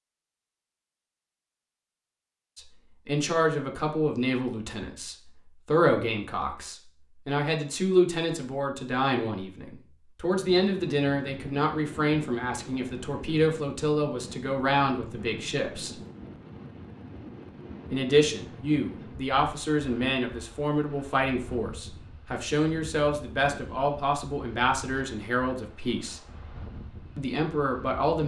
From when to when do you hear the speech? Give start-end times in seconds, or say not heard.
2.5-15.9, 17.9-26.2, 27.1-28.2.